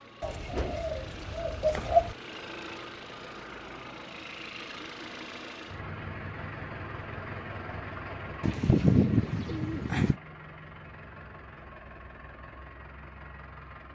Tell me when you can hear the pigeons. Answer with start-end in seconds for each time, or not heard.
0.2-2.1, 8.4-10.2.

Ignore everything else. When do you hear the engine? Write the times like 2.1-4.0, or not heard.
0.0-13.8.